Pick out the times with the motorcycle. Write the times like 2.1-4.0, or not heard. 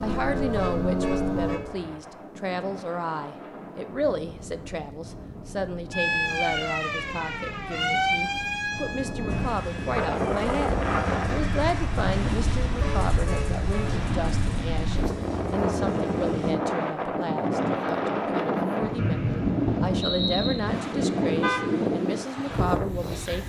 0.0-1.6, 9.2-16.6.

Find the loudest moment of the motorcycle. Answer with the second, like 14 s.
1 s.